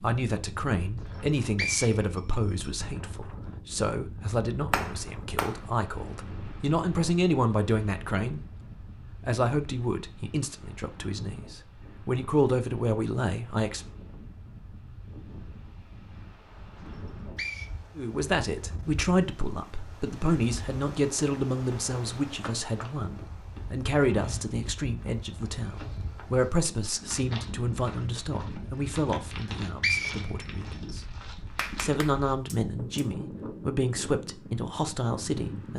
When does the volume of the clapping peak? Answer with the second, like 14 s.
5 s.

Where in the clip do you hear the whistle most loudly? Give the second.
30 s.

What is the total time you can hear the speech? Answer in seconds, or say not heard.
31 s.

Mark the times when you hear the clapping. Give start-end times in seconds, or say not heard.
4.7-5.6, 31.5-33.1.